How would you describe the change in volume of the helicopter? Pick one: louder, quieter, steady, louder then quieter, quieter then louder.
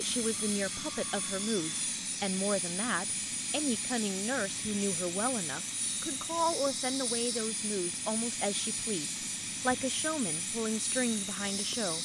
steady.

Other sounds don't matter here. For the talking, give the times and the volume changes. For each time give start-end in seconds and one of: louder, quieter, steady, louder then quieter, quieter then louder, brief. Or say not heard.
0.0-12.0 steady.